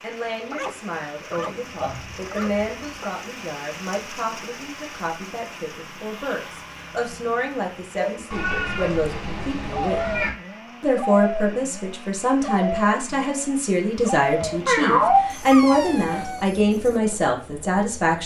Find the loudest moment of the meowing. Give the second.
15 s.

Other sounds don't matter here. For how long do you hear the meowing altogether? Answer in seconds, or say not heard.
5 s.